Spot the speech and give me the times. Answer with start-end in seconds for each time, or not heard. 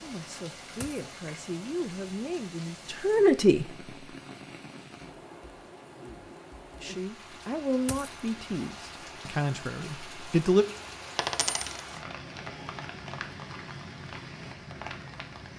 0.0-3.6, 6.8-10.7.